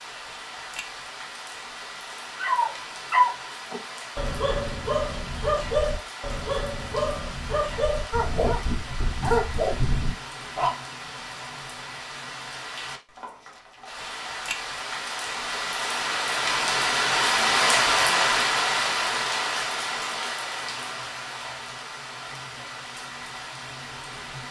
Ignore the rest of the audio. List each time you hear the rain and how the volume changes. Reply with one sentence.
You can hear the rain from 0.0 to 24.4 s, getting louder then quieter.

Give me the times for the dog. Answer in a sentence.
The dog can be heard from 2.4 to 10.7 s.